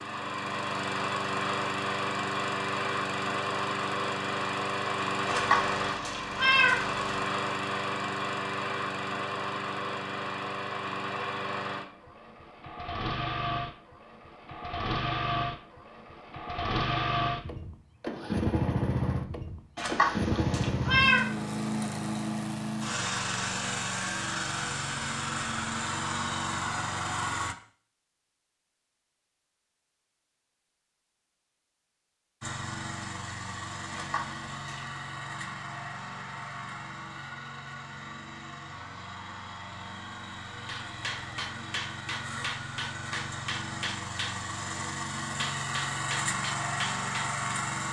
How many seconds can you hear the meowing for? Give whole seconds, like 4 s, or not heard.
4 s.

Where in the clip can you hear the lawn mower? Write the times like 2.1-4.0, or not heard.
0.0-27.6, 32.4-47.8.